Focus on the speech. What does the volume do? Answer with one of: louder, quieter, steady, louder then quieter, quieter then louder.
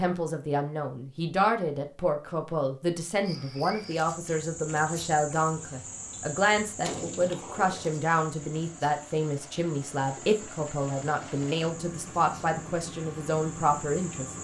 steady.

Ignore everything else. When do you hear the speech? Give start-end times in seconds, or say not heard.
0.0-14.2.